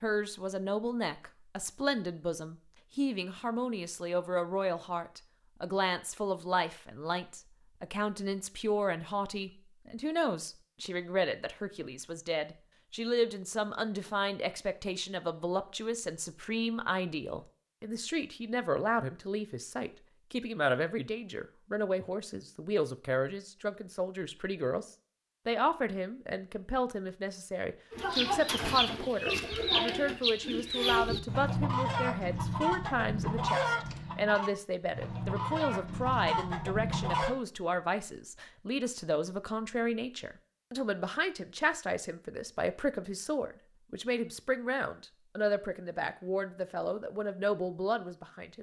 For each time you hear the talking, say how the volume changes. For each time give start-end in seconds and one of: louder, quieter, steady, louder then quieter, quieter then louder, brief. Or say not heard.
0.0-48.5 steady.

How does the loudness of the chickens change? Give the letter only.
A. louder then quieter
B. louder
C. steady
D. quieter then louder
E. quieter
C.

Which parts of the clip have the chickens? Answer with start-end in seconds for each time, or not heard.
27.9-37.4.